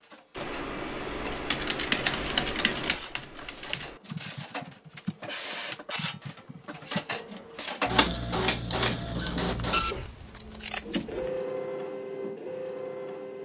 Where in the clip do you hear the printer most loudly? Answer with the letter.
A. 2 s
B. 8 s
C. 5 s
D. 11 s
B.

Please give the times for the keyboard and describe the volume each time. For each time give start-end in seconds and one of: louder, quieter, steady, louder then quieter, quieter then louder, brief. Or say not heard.
0.3-7.2 quieter.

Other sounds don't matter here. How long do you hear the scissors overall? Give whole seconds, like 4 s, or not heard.
2 s.